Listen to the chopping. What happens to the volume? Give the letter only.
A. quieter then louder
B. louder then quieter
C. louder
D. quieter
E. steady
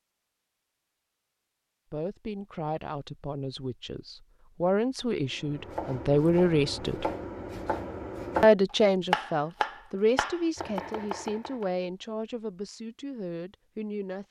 B.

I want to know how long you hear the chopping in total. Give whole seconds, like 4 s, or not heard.
6 s.